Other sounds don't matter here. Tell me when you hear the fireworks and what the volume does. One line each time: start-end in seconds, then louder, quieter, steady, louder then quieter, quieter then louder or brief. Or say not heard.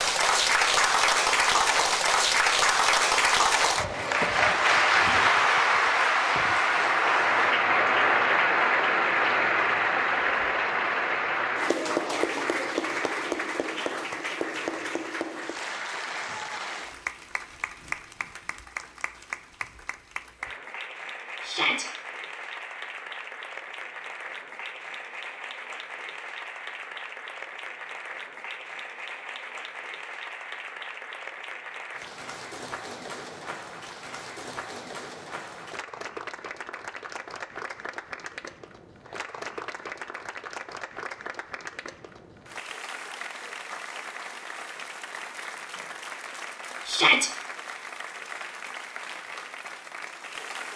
not heard.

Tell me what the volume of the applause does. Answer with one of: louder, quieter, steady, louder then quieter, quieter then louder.
quieter.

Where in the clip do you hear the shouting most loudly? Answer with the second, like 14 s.
47 s.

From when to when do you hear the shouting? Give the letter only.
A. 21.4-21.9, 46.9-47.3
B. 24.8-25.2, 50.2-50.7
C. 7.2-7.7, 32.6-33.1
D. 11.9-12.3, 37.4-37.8
A.